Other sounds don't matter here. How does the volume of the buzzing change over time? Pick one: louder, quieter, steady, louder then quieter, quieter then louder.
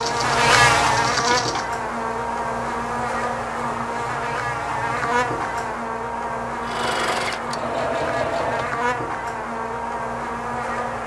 quieter.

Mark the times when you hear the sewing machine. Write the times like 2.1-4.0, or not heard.
0.0-1.7, 6.6-8.8.